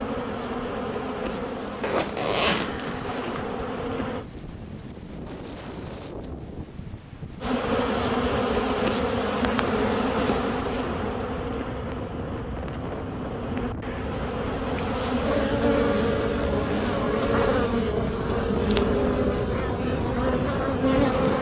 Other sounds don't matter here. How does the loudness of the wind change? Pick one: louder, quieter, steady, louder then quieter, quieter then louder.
louder.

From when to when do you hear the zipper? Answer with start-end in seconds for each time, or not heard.
1.8-3.5, 16.4-16.9.